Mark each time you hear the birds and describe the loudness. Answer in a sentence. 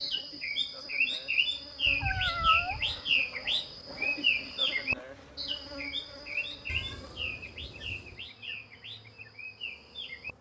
The birds can be heard from 0.0 to 10.3 s, getting quieter.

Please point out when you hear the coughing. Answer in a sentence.
The coughing can't be heard in this clip.